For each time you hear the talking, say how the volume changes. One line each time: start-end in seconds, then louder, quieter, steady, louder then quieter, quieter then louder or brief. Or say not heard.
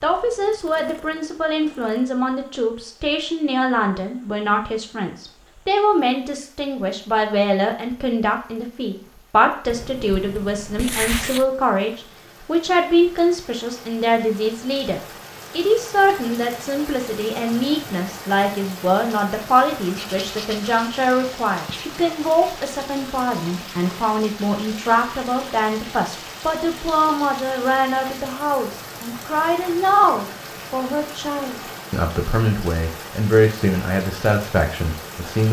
0.0-35.4 steady.